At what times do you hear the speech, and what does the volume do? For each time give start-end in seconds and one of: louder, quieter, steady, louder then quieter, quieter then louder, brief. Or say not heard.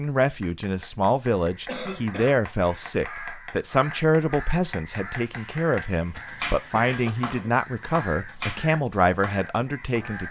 0.0-10.2 steady.